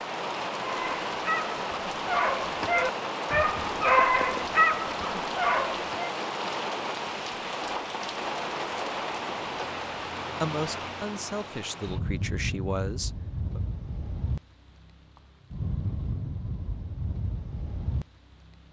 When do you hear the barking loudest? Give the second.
4 s.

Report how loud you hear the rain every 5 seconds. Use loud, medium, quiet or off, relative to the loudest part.
loud, loud, medium, medium.